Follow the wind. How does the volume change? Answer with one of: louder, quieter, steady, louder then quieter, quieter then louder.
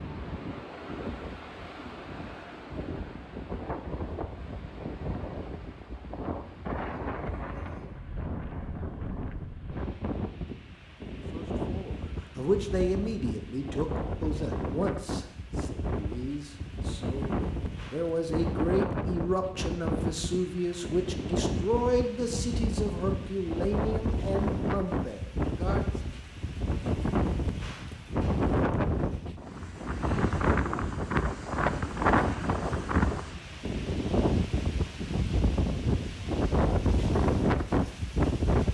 louder.